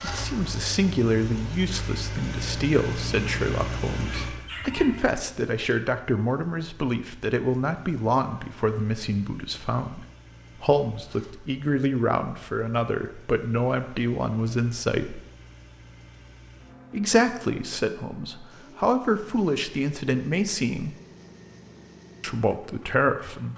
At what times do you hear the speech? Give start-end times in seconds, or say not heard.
0.0-15.2, 16.9-20.9, 22.2-23.5.